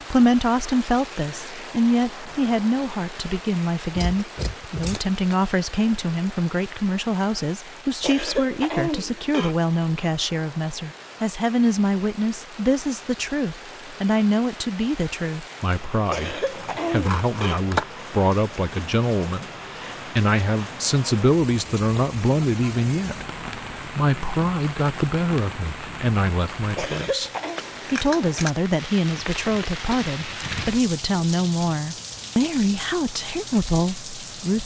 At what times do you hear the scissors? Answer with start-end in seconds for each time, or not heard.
4.0-5.3, 16.5-17.9, 27.6-28.6.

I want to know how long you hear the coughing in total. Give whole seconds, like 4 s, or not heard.
4 s.